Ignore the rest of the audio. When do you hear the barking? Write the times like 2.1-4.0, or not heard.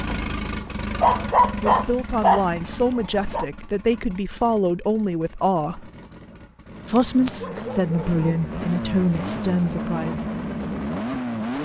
0.7-3.5, 7.0-9.1.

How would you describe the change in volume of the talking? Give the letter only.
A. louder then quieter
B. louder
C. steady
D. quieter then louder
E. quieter
C.